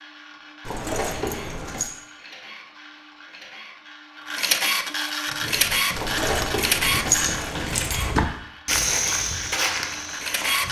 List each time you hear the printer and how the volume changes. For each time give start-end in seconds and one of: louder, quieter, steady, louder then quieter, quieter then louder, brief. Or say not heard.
0.0-10.6 louder then quieter.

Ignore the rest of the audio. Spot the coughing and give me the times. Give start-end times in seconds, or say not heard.
not heard.